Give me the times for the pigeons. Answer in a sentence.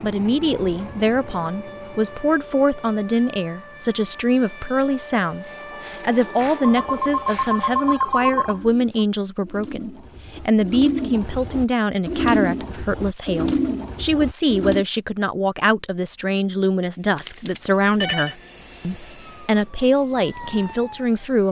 You can hear the pigeons from 5.3 to 14.8 s.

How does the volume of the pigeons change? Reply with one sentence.
The loudness of the pigeons goes up.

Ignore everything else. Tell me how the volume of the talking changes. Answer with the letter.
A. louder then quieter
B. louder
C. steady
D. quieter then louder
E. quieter
C.